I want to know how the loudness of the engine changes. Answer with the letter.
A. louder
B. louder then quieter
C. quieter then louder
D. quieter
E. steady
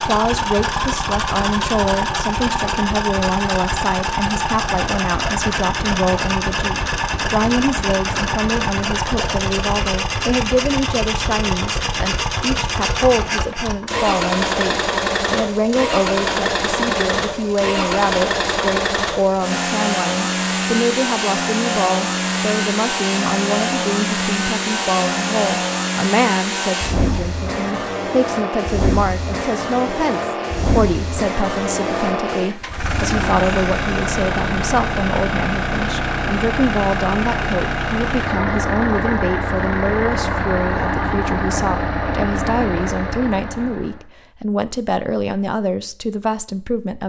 E.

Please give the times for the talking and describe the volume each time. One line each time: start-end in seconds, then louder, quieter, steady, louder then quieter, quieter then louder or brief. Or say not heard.
0.0-47.0 steady.